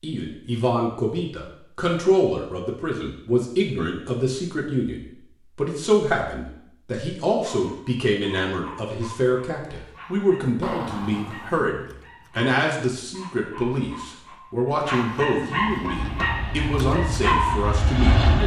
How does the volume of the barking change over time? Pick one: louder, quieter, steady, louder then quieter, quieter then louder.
louder.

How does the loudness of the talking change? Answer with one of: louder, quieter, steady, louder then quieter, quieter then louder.
steady.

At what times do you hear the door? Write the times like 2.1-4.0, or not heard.
10.6-11.7.